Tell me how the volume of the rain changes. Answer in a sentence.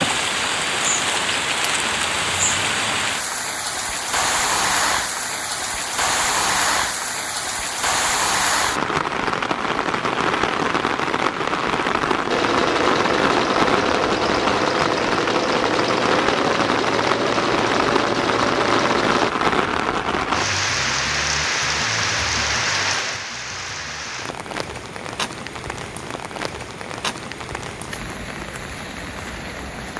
The loudness of the rain goes down.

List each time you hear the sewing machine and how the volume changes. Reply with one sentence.
The sewing machine can be heard from 12.2 to 19.4 s, at a steady volume.